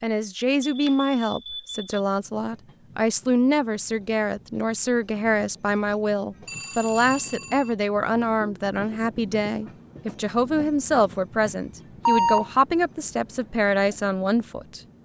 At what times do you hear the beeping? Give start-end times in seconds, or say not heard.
0.6-1.9, 6.5-7.8, 12.1-12.5.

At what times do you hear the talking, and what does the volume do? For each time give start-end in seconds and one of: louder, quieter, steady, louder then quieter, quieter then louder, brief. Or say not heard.
0.0-14.8 steady.